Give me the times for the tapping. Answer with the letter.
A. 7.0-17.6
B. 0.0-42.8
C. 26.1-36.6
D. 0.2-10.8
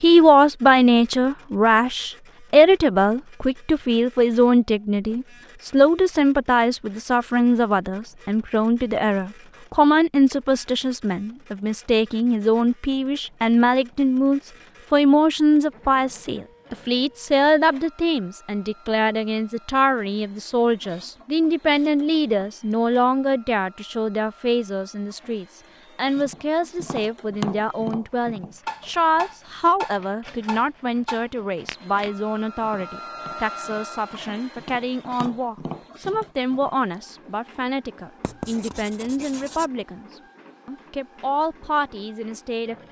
C.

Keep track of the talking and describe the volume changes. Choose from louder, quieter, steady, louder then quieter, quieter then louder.
quieter.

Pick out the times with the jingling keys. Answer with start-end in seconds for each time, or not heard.
not heard.